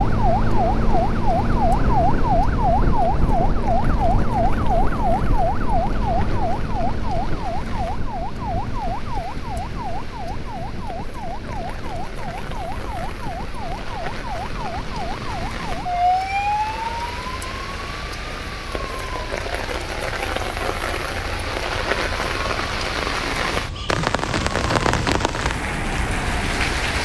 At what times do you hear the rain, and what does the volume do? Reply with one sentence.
The rain can be heard from 0.0 to 27.0 s, getting louder.